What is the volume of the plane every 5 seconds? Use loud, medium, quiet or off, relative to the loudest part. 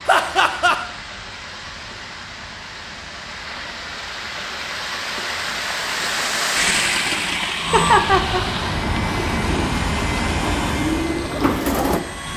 quiet, loud, loud.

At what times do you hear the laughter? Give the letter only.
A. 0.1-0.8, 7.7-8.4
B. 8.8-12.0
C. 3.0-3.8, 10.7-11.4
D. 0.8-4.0
A.